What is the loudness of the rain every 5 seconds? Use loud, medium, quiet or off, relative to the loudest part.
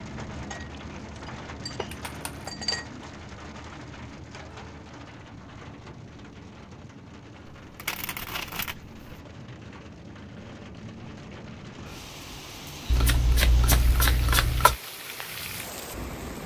loud, medium, loud, loud.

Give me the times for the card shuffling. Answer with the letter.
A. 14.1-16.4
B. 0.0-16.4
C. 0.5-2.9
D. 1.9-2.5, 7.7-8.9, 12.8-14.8
D.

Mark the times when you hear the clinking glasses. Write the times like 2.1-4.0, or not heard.
0.5-2.9.